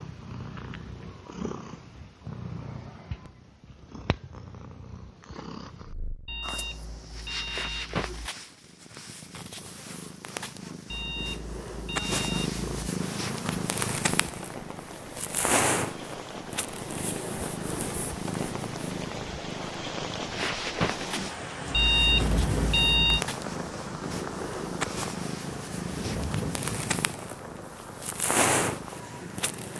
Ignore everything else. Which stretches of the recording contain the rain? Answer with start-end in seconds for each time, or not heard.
12.9-29.7.